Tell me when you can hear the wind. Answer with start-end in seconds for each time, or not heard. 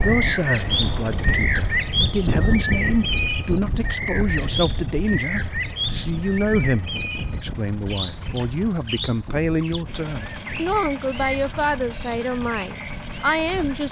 0.0-13.8.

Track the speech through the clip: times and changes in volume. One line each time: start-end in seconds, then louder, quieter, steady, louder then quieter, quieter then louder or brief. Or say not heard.
0.0-13.8 steady.